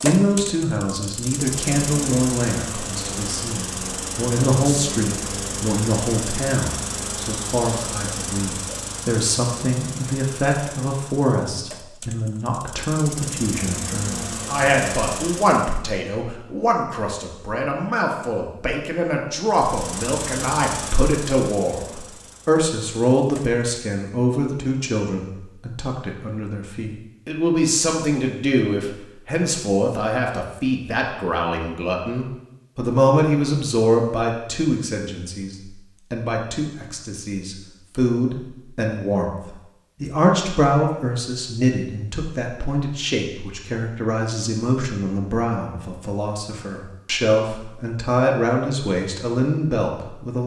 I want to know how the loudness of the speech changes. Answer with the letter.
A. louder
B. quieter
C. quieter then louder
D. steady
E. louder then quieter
D.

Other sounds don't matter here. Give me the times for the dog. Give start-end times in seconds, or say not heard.
not heard.